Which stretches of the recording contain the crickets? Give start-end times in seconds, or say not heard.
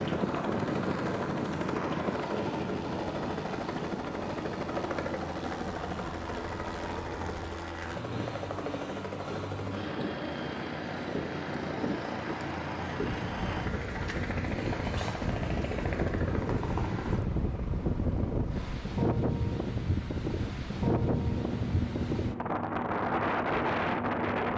not heard.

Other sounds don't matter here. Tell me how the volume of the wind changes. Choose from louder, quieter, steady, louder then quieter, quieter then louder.
quieter then louder.